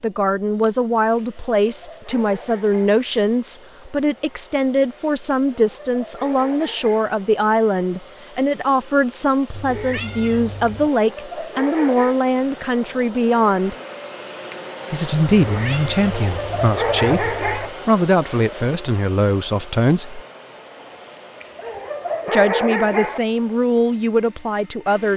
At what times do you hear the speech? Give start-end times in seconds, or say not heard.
0.0-13.8, 14.9-20.2, 22.2-25.1.